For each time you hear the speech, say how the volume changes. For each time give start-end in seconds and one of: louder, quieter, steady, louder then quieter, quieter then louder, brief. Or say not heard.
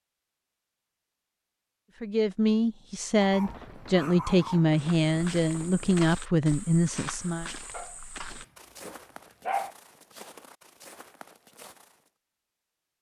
2.0-7.5 steady.